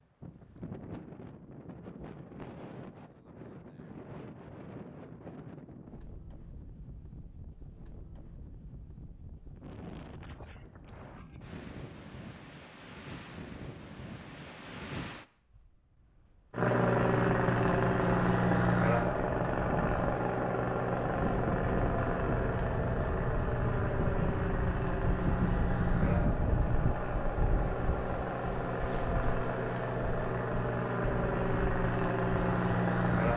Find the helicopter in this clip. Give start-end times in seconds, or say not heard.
16.5-33.3.